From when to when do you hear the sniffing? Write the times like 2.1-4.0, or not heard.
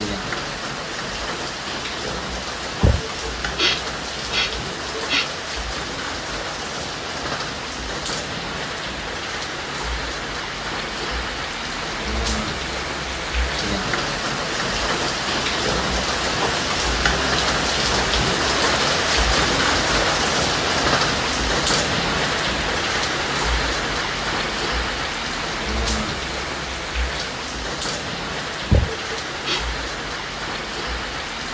2.8-5.3, 28.7-29.6.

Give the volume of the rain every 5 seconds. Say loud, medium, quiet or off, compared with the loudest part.
medium, medium, medium, loud, loud, medium, medium.